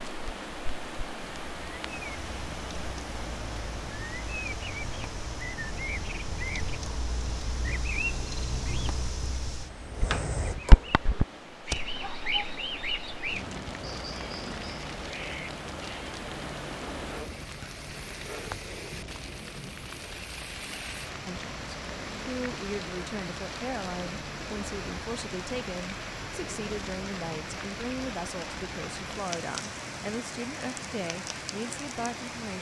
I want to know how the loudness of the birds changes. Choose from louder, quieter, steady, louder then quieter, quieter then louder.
louder then quieter.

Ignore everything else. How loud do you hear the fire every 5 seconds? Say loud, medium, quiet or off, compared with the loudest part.
medium, medium, loud, medium, medium, medium, medium.